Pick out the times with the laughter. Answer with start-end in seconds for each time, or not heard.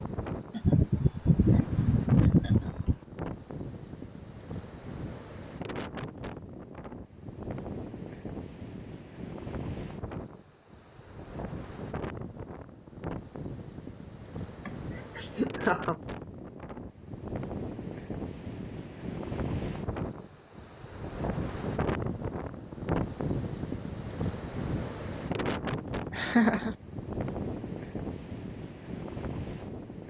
0.5-3.0, 14.7-15.9, 26.1-26.8.